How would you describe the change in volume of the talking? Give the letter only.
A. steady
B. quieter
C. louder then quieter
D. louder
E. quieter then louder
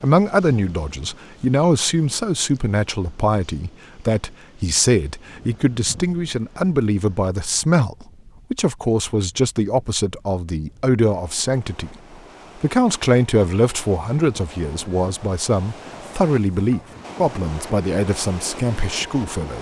A.